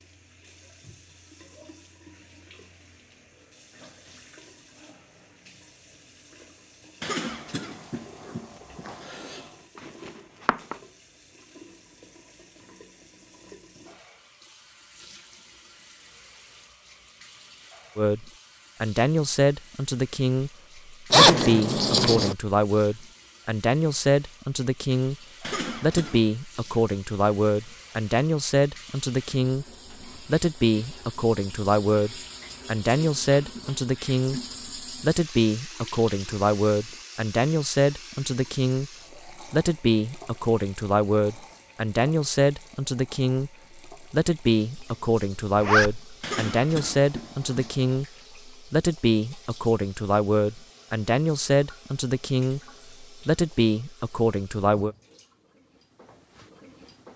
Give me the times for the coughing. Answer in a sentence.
You can hear the coughing from 7.0 to 9.6 s, from 25.4 to 26.2 s and from 46.2 to 47.9 s.